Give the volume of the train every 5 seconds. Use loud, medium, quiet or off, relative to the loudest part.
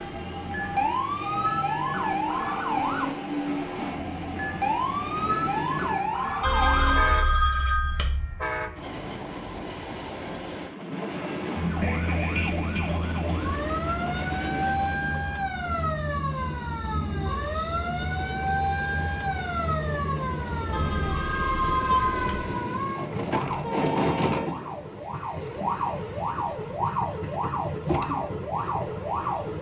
loud, loud, loud, medium, loud, loud.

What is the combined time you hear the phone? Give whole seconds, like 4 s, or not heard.
4 s.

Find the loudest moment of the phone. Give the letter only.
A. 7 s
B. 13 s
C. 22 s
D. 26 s
A.